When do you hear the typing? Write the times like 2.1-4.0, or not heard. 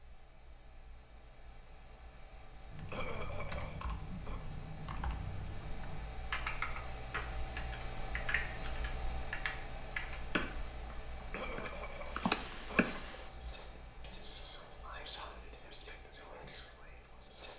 2.7-13.2.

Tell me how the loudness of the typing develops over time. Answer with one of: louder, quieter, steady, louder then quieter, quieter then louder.
louder.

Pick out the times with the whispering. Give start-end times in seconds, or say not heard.
13.2-17.5.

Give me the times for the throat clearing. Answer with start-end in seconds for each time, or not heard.
2.9-4.4, 11.3-13.2.